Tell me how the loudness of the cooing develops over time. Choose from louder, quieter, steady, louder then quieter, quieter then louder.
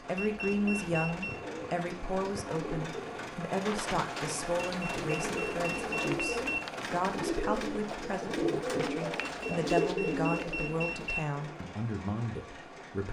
louder.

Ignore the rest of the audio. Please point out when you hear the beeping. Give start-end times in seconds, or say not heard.
0.1-1.4, 4.7-6.6, 9.2-11.2.